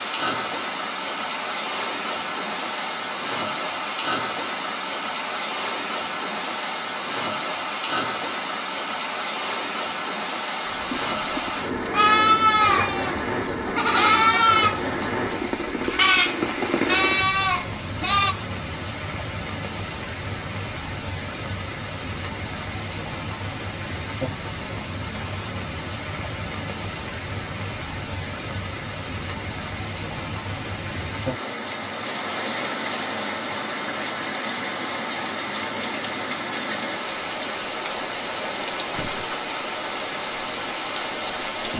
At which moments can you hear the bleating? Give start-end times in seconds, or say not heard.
10.7-18.4.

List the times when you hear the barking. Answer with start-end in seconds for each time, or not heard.
not heard.